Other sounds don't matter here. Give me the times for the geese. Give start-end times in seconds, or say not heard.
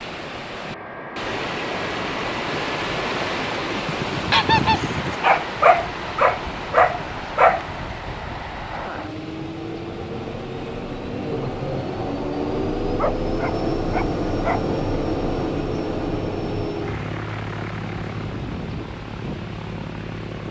4.0-5.2.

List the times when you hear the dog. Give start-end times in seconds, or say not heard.
5.2-7.7, 12.9-14.7.